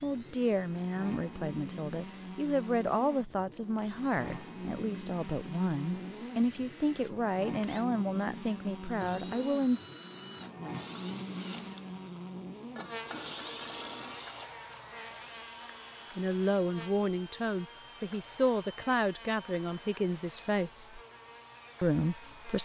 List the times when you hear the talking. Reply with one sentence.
You can hear the talking from 0.0 to 9.8 s, from 16.1 to 21.0 s and from 21.8 to 22.6 s.